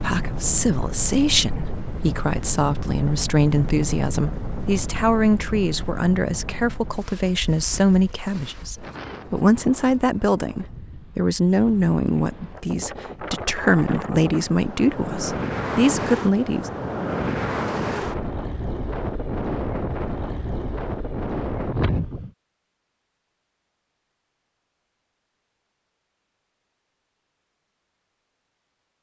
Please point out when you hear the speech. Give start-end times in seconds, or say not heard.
0.0-16.7.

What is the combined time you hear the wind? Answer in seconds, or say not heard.
22 s.